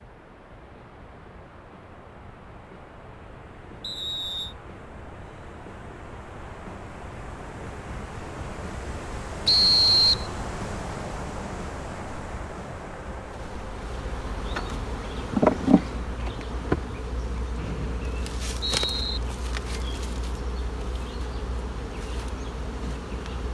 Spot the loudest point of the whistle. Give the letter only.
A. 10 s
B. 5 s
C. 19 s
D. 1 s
A.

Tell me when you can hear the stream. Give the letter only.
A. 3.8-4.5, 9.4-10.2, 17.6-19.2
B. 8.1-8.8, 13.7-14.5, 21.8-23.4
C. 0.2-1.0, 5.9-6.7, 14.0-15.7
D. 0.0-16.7
D.